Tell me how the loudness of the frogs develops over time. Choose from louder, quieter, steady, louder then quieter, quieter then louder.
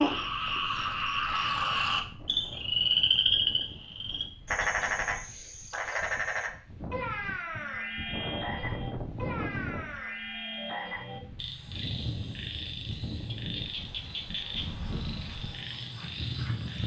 quieter.